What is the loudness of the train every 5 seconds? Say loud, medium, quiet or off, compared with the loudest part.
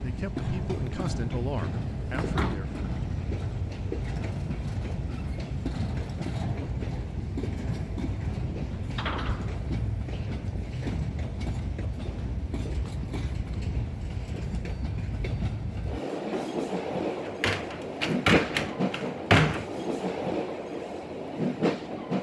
loud, loud, medium, loud, loud.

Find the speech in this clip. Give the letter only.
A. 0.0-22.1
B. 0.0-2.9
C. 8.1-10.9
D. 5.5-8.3
B.